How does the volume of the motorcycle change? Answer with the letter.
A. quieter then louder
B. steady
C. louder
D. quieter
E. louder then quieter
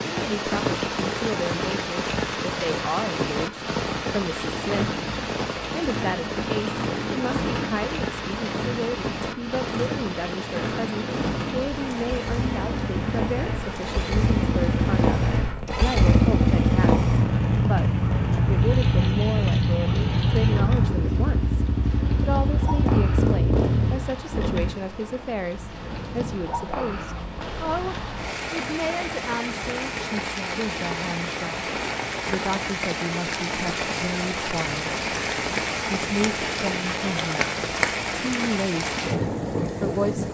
C.